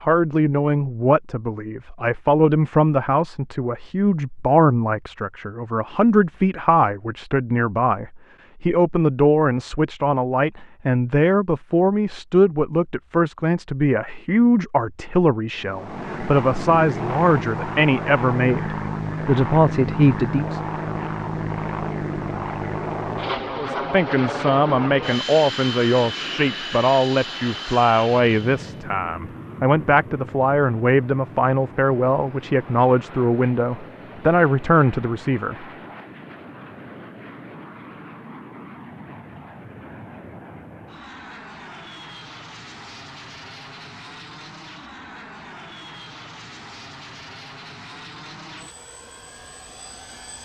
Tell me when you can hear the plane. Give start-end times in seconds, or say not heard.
15.6-50.4.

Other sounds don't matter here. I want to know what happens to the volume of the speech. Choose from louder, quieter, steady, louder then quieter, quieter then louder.
steady.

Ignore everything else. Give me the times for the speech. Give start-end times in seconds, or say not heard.
0.0-20.6, 23.6-35.6.